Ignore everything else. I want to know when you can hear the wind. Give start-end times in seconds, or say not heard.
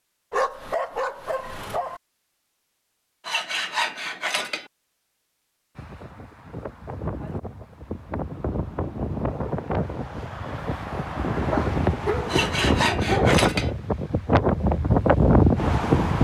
5.8-16.1.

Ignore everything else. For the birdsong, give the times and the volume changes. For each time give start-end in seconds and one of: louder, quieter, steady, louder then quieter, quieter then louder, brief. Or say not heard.
not heard.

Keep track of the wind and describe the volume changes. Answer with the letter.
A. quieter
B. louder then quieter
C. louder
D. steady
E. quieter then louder
C.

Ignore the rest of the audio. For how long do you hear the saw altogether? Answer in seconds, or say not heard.
3 s.